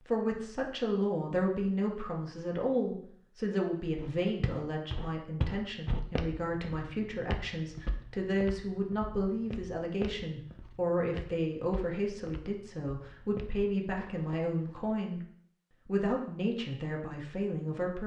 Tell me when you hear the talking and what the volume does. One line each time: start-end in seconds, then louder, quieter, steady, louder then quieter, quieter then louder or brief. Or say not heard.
0.1-15.2 steady
15.8-18.0 brief.